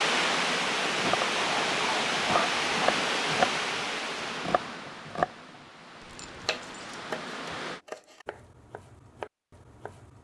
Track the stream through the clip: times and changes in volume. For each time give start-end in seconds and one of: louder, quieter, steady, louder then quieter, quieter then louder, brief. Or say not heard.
0.0-7.8 quieter.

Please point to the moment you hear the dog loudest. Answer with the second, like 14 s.
2 s.